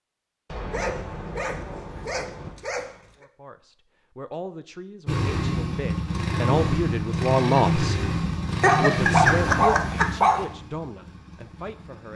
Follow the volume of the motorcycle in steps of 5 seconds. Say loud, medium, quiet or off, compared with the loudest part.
off, loud, quiet.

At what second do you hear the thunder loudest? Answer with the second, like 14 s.
1 s.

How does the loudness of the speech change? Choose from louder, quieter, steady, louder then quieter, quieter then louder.
louder then quieter.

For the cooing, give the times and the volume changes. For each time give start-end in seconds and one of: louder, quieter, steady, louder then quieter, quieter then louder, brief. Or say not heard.
not heard.